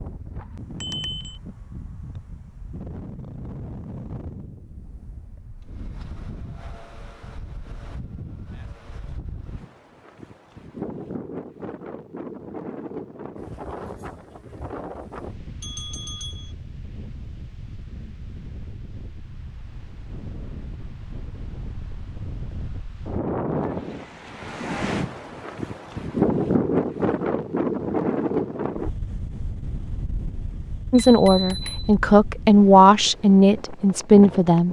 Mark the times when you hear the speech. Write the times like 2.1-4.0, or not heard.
30.9-34.6.